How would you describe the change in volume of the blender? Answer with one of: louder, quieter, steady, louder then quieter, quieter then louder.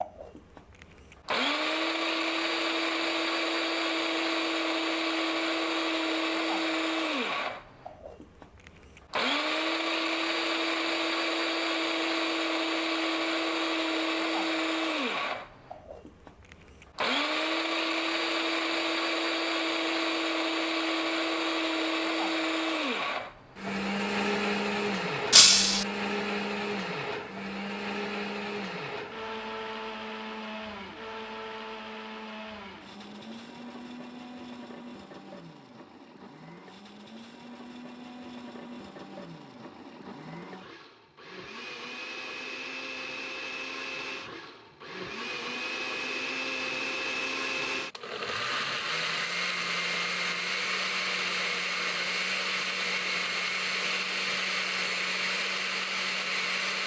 quieter then louder.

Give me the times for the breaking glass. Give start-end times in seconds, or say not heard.
25.3-25.9.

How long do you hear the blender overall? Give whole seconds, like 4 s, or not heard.
57 s.